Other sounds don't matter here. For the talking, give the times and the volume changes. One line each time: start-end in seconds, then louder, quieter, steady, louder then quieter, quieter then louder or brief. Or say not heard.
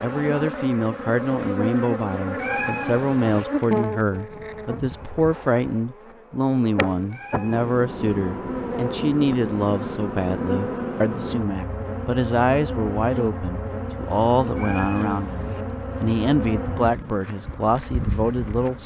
0.0-18.8 steady.